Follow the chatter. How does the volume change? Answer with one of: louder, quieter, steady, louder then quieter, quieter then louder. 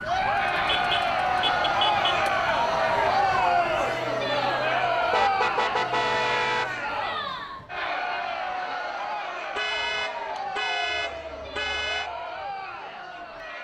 quieter.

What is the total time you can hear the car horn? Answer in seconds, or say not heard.
6 s.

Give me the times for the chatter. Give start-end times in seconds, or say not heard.
0.0-13.5.